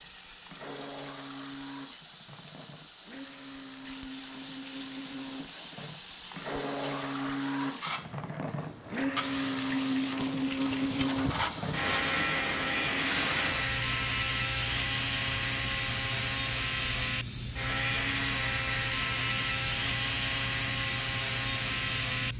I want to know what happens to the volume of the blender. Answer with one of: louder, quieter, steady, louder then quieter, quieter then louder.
louder.